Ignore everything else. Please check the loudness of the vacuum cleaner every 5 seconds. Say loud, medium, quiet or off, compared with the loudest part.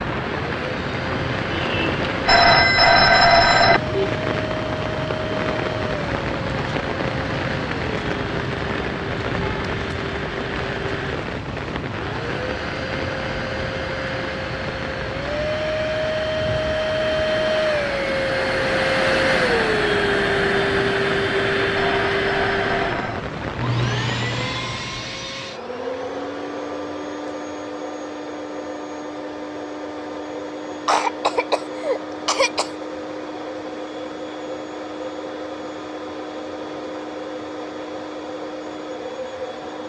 medium, medium, medium, loud, loud, medium, medium, medium.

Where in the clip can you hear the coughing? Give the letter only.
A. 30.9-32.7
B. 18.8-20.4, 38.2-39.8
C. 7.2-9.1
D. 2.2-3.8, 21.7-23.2
A.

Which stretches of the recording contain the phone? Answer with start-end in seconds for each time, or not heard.
2.2-3.8, 21.7-23.2.